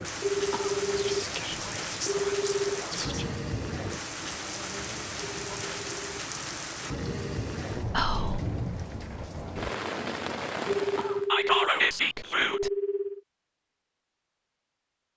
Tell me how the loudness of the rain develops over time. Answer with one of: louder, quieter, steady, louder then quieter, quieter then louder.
steady.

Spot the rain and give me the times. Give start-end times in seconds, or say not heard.
0.0-11.3.